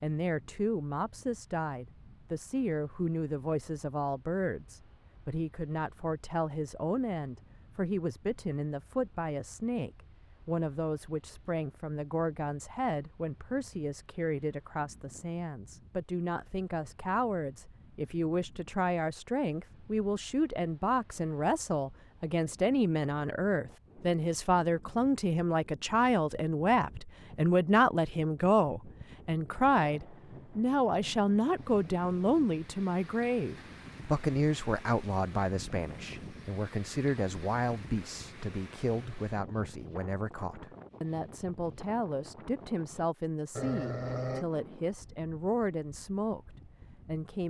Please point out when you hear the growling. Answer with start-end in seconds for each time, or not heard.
43.5-44.5.